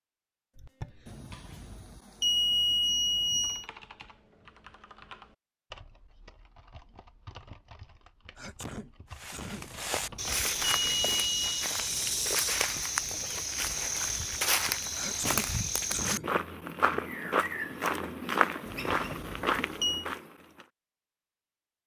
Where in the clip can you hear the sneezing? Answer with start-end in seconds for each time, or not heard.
0.6-1.6, 8.3-9.7, 14.9-16.3.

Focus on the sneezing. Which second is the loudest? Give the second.
15 s.